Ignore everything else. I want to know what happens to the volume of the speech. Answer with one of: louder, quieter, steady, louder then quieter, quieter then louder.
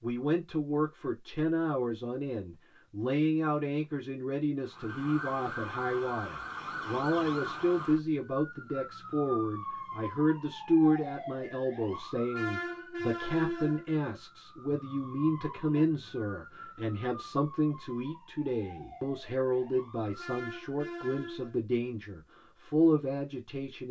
steady.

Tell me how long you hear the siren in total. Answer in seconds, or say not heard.
17 s.